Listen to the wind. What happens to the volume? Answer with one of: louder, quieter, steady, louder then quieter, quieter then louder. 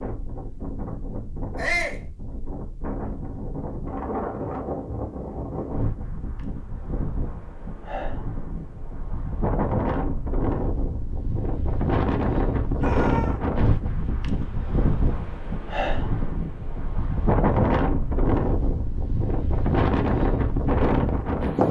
louder.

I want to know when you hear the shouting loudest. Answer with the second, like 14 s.
2 s.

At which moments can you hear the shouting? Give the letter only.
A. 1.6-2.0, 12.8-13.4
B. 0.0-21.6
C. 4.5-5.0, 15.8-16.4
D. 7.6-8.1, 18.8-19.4
A.